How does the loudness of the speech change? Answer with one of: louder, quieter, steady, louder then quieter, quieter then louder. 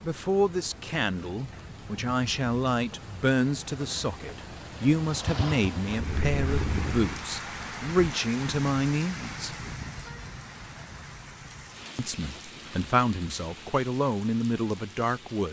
steady.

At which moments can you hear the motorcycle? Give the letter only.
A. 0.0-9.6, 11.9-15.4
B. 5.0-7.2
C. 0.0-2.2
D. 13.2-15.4
B.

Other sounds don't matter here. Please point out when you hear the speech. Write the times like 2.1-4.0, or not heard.
0.0-9.6, 11.9-15.4.